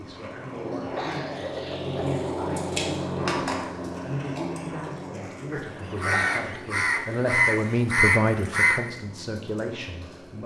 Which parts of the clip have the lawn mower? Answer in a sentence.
The lawn mower can be heard from 0.0 to 10.4 s.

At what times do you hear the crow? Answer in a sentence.
The crow can be heard from 5.5 to 8.8 s.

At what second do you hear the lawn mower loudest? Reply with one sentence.
The loudest moment of the lawn mower is at 3 seconds.